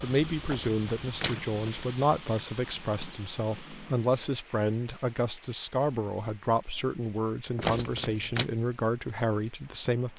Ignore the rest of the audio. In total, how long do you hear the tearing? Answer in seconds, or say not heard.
3 s.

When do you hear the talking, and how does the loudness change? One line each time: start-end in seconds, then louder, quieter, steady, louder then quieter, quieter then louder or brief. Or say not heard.
0.0-10.1 steady.